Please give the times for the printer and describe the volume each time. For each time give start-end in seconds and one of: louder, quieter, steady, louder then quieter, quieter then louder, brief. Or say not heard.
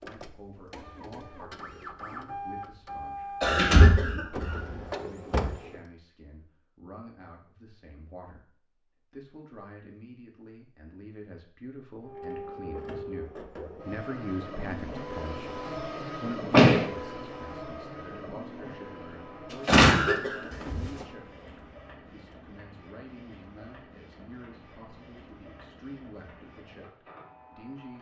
0.0-5.8 louder
12.0-27.9 quieter.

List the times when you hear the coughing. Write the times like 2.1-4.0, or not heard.
3.4-4.6, 19.6-20.5.